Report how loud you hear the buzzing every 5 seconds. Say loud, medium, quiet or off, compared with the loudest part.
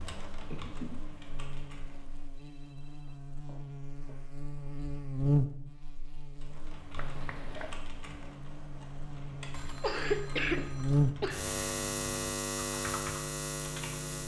quiet, loud, loud.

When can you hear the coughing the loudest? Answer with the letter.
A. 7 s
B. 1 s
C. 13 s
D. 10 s
D.